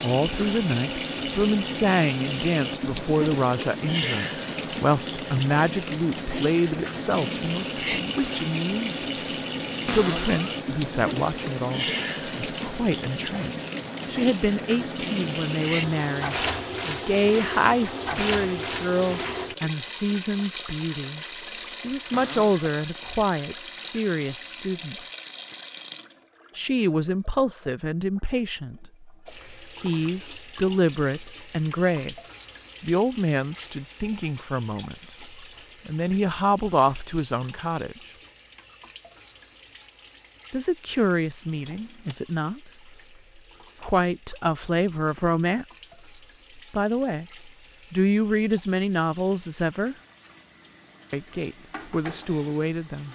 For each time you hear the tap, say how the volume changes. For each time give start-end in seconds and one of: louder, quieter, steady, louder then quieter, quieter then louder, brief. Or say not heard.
0.0-53.0 quieter.